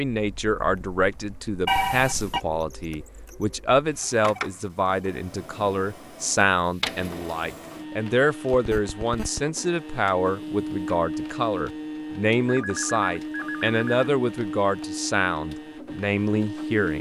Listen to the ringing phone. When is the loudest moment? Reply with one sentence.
The loudest moment of the ringing phone is at 2 seconds.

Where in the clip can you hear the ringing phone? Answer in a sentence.
The ringing phone can be heard from 1.6 to 2.4 s, from 8.5 to 9.4 s and from 12.4 to 13.8 s.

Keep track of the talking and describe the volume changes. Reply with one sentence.
The loudness of the talking stays about the same.